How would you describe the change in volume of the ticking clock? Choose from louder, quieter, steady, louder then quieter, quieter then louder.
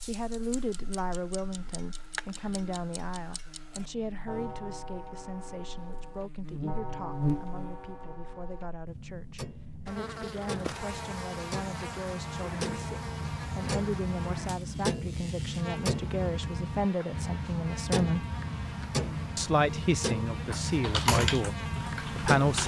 louder.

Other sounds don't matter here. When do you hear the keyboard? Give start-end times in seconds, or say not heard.
20.4-22.6.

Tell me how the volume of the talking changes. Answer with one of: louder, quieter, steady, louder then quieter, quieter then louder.
quieter then louder.